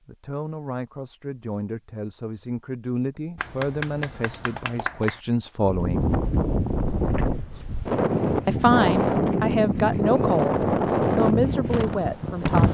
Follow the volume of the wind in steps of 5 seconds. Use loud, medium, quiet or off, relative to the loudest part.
off, loud, loud.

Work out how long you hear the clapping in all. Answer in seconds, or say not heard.
2 s.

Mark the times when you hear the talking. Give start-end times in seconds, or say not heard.
0.1-6.2, 8.4-12.6.